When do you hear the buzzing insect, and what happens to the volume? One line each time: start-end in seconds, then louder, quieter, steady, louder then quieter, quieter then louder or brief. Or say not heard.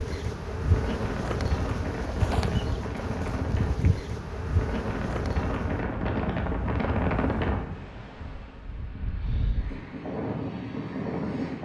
0.0-5.8 steady.